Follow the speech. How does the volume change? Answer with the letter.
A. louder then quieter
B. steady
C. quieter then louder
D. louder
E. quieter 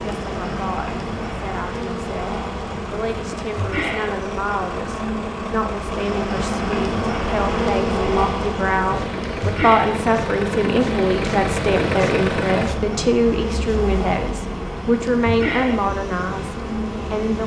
D.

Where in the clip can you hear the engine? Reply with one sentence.
You can hear the engine from 0.0 to 17.4 s.